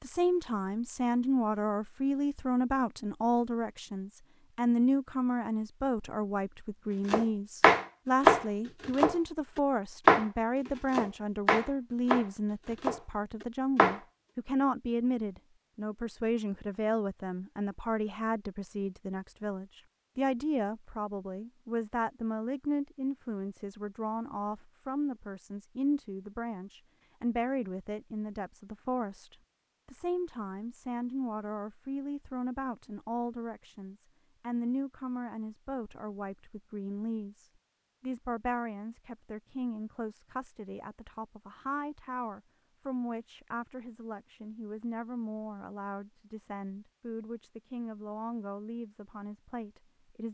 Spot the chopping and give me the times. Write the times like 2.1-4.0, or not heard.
7.0-14.0.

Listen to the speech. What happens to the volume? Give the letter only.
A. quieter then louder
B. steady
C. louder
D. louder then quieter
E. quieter
E.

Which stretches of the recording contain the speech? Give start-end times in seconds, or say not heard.
0.0-50.2.